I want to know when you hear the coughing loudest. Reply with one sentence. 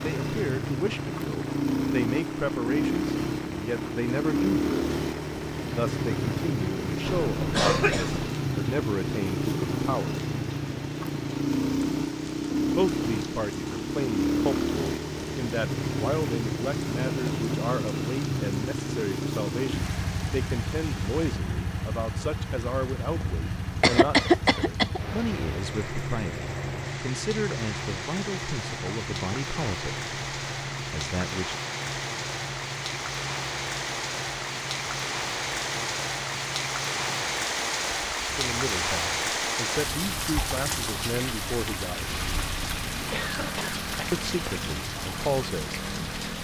The loudest moment of the coughing is at 24 seconds.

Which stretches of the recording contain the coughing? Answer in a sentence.
You can hear the coughing from 7.0 to 8.3 s, from 23.8 to 25.0 s and from 43.1 to 44.5 s.